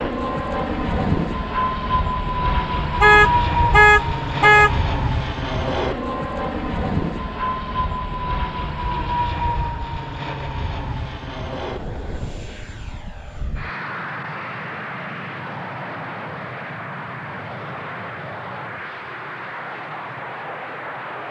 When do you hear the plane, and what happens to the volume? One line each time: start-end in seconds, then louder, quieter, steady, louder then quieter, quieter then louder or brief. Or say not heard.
0.0-21.2 quieter.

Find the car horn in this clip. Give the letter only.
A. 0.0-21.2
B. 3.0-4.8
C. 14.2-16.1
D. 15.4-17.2
B.